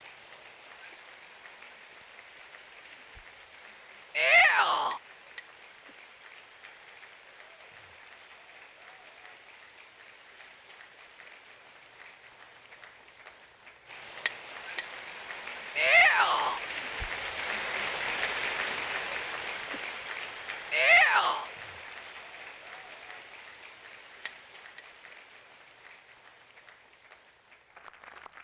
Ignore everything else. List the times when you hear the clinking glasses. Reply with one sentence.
You can hear the clinking glasses from 4.3 to 5.4 s, from 14.2 to 14.8 s and from 24.2 to 24.9 s.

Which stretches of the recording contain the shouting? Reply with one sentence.
You can hear the shouting from 4.2 to 5.0 s, from 15.8 to 16.6 s and from 20.7 to 21.4 s.